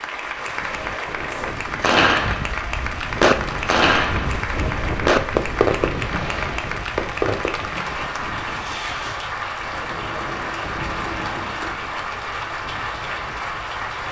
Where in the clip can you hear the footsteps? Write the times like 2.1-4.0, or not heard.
not heard.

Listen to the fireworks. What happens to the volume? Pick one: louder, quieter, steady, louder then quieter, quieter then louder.
quieter.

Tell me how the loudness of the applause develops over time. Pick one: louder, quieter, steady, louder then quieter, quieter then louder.
steady.